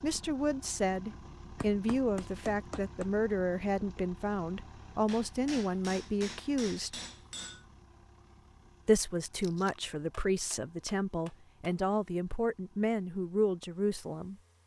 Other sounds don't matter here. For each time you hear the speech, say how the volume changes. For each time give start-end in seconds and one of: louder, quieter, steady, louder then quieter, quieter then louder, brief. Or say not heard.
0.0-7.0 steady
8.8-14.3 steady.